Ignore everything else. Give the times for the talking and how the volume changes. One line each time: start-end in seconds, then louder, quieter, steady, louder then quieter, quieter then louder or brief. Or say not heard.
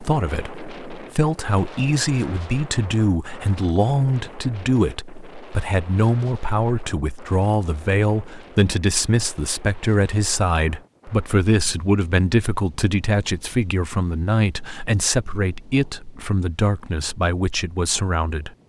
0.0-18.5 steady.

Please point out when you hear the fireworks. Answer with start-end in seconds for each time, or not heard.
not heard.